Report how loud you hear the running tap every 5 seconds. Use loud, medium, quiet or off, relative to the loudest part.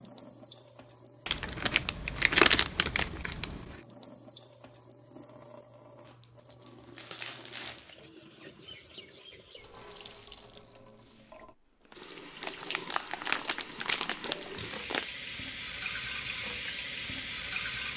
quiet, quiet, medium, loud.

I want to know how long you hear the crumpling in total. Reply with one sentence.
You can hear the crumpling for 7 seconds altogether.